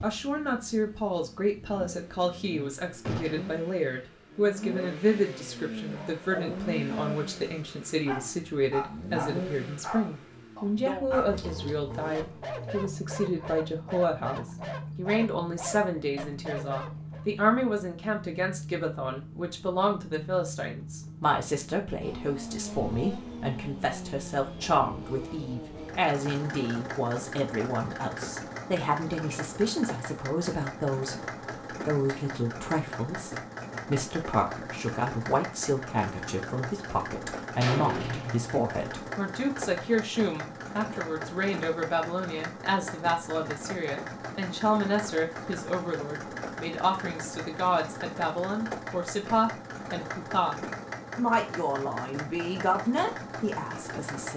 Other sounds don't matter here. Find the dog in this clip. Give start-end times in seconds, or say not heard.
5.8-17.3.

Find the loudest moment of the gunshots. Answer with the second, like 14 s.
38 s.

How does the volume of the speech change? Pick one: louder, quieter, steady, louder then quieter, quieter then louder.
steady.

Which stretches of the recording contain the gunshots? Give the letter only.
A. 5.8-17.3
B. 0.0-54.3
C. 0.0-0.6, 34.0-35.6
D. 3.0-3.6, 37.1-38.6
D.